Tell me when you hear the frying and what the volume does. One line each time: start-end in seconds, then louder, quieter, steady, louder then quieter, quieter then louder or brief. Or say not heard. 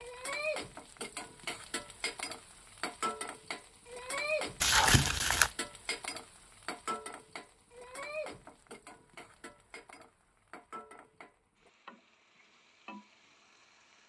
0.0-14.0 quieter.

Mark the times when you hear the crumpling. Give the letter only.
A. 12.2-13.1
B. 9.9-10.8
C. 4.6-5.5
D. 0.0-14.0
C.